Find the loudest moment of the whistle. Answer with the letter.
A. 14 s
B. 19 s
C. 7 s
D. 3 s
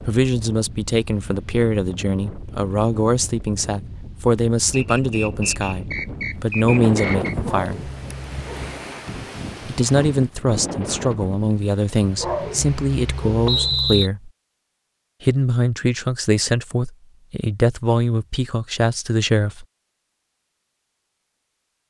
A.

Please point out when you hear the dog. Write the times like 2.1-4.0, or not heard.
7.3-8.8, 12.0-14.1.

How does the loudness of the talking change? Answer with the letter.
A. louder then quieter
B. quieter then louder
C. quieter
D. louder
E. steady
E.